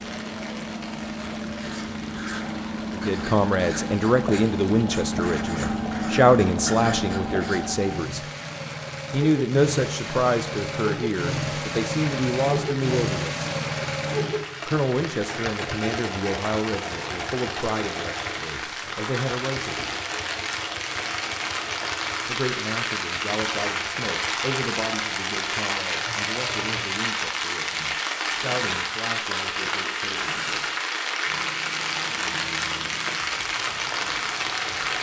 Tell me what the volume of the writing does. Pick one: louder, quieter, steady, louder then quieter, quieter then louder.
louder.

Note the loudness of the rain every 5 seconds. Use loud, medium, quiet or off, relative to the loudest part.
quiet, quiet, medium, medium, loud, loud, loud.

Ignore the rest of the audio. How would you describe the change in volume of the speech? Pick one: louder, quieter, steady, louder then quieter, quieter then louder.
quieter.